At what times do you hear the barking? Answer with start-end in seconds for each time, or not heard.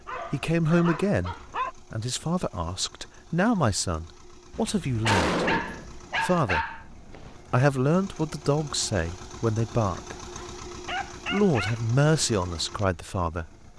0.1-1.8, 5.0-7.4, 10.3-11.8.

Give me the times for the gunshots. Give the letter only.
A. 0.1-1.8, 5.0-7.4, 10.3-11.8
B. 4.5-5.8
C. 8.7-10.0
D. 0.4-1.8
B.